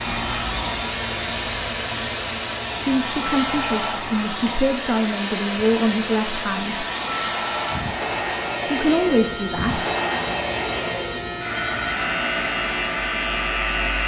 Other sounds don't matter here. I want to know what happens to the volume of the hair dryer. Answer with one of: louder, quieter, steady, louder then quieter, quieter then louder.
steady.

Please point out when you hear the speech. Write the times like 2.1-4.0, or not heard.
2.8-6.8, 8.7-9.8.